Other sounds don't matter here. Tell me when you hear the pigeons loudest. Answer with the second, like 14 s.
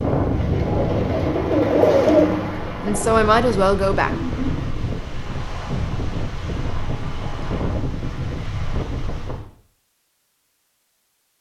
2 s.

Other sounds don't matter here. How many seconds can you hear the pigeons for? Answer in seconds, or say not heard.
5 s.